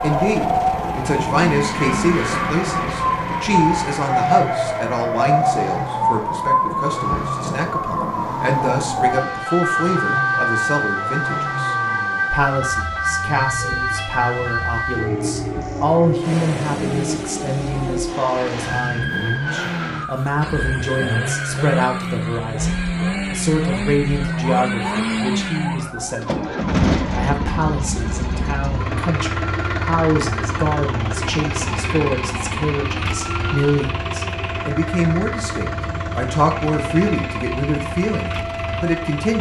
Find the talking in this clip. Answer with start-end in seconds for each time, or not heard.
0.0-39.3.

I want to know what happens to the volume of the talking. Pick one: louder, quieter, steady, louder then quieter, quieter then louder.
steady.